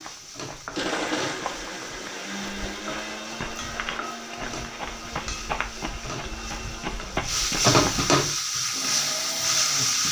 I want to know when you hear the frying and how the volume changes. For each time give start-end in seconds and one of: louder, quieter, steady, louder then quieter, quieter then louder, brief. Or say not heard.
0.0-10.0 louder.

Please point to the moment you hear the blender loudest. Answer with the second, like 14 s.
1 s.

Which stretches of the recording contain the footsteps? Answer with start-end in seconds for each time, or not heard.
0.0-8.1.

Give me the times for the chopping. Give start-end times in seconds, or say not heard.
not heard.